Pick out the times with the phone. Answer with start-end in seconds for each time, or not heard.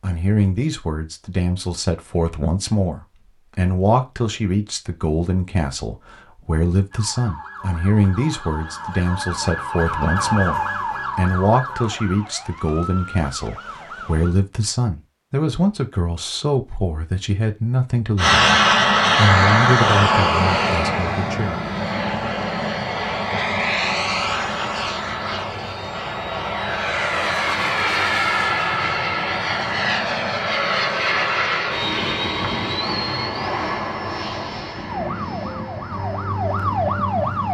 not heard.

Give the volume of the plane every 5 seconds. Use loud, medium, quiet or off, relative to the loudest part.
off, off, off, loud, medium, medium, medium, quiet.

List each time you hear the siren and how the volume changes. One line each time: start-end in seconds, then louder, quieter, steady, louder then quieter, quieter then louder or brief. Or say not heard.
6.9-14.3 louder then quieter
34.9-37.4 brief.